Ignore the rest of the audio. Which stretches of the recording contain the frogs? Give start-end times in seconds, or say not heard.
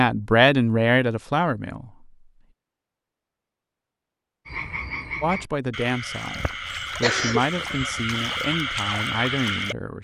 4.5-9.8.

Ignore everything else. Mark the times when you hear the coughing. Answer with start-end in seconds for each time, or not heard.
6.3-8.2.